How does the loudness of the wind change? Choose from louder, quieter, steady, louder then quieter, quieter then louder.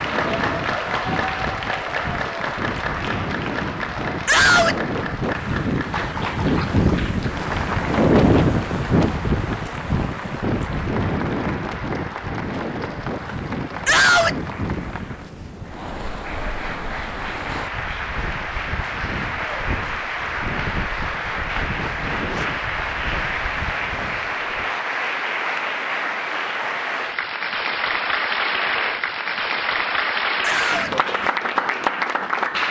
louder then quieter.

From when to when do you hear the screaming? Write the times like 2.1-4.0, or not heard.
4.2-4.8, 13.8-14.3, 30.4-30.9.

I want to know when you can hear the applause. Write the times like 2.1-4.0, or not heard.
0.0-32.6.